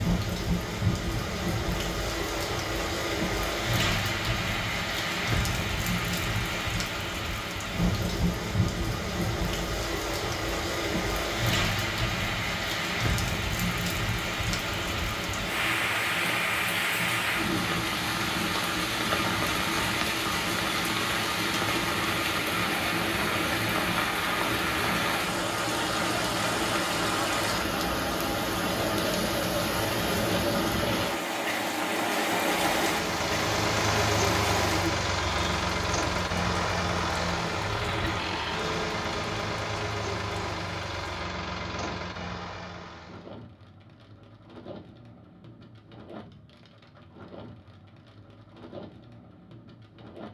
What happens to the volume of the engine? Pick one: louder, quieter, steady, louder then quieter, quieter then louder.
quieter.